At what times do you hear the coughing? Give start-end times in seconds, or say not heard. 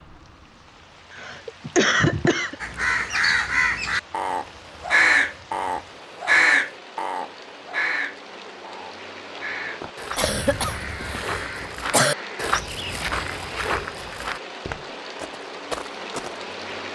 1.1-2.5, 10.2-12.2.